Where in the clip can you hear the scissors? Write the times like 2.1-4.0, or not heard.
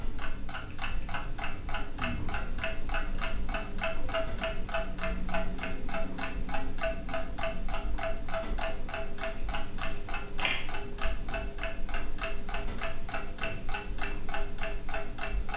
9.2-10.7.